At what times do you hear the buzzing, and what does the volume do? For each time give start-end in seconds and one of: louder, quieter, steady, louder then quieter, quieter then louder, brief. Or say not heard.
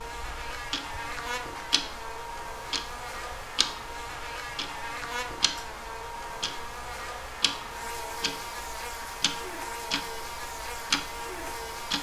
0.0-11.9 steady.